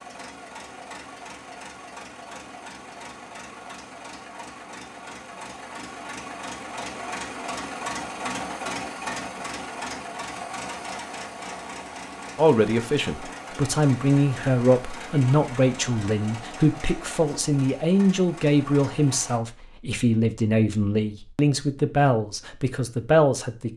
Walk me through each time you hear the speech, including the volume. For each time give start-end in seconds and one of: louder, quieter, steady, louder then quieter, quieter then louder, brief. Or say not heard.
12.3-23.7 steady.